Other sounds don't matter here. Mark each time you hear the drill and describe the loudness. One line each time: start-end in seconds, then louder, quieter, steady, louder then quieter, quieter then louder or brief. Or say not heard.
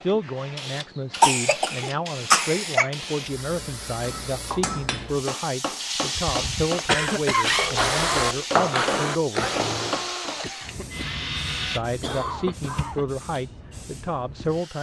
7.4-12.9 quieter.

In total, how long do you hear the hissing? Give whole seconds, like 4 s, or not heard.
15 s.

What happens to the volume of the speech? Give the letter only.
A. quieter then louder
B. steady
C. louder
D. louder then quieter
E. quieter
B.